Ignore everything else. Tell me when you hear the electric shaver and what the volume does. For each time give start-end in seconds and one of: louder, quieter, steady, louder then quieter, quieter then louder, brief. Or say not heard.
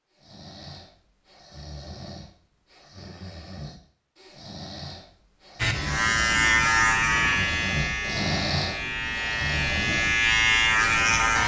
5.5-11.4 quieter then louder.